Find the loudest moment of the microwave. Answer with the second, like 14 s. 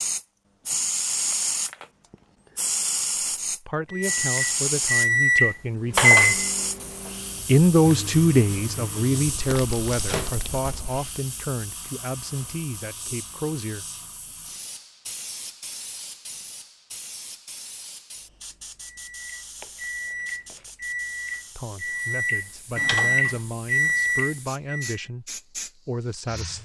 6 s.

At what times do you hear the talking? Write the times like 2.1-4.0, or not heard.
3.5-6.4, 7.5-13.8, 21.6-26.6.